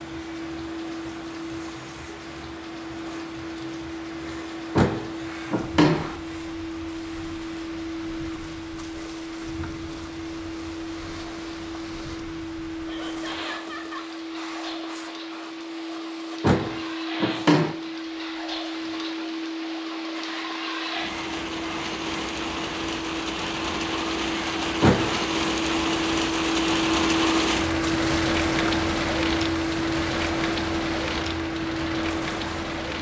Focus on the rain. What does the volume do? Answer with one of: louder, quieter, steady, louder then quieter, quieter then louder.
louder.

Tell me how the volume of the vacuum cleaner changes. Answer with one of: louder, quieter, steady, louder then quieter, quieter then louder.
louder.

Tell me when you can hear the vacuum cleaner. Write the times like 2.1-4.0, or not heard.
0.0-32.9.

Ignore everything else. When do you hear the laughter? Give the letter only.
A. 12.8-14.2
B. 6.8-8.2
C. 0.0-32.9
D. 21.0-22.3
A.